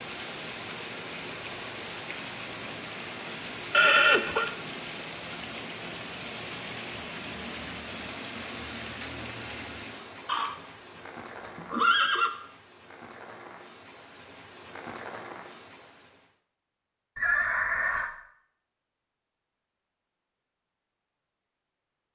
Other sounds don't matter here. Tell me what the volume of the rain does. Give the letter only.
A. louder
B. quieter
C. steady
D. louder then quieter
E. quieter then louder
B.